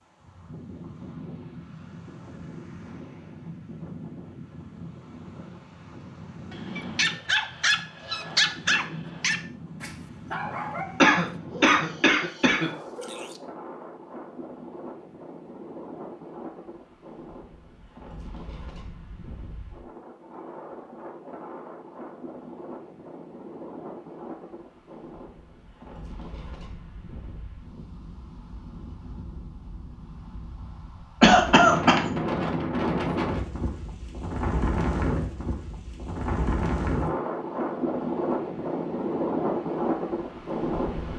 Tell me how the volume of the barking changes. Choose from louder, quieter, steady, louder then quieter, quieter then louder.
quieter.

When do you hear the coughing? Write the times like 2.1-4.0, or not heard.
11.0-12.7, 31.2-32.0.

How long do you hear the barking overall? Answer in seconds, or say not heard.
7 s.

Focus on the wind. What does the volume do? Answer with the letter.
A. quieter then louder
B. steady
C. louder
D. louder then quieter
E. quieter
C.